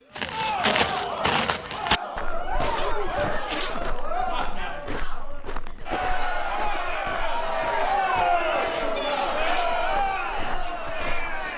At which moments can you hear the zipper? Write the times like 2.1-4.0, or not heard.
2.5-3.8, 8.6-9.8.